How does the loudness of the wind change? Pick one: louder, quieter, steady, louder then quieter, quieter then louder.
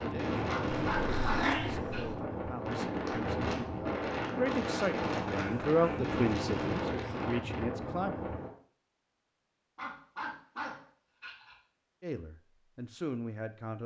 steady.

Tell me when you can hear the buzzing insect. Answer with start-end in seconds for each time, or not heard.
not heard.